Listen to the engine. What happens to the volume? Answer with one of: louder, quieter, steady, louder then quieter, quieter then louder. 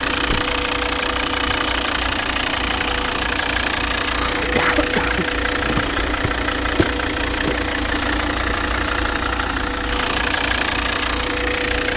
steady.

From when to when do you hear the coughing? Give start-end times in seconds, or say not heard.
4.2-5.2.